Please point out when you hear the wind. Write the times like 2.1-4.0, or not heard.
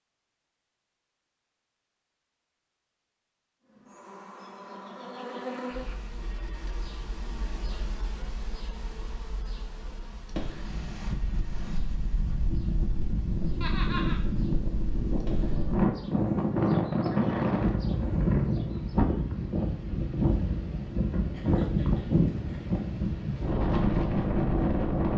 10.3-25.1.